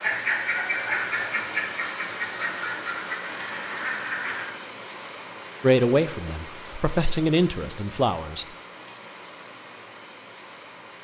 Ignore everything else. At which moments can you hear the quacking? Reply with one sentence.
The quacking can be heard from 0.0 to 4.5 s.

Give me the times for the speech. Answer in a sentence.
The speech can be heard from 5.6 to 8.4 s.